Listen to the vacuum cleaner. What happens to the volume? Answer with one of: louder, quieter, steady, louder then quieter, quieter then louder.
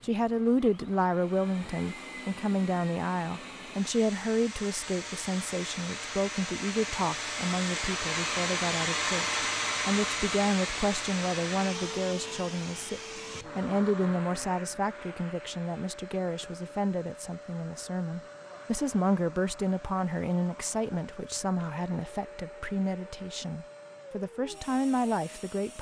louder then quieter.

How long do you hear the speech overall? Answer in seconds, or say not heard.
26 s.